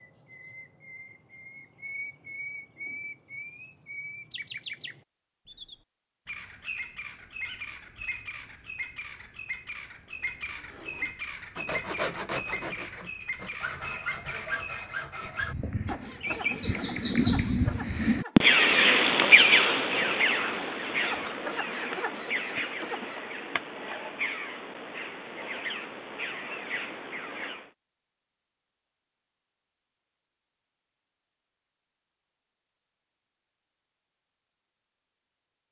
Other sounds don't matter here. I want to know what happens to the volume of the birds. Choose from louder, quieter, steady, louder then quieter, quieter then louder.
louder then quieter.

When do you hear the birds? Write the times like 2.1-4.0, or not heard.
0.0-27.7.